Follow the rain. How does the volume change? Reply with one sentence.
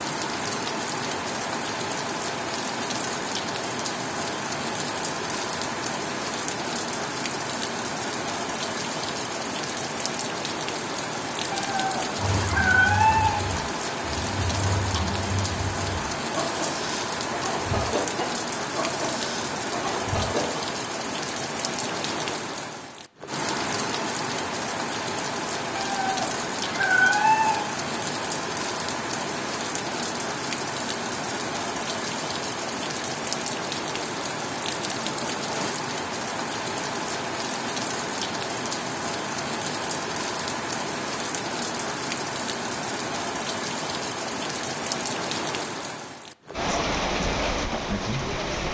The loudness of the rain stays about the same.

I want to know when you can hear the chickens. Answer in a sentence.
The chickens can be heard from 12.2 to 20.6 s.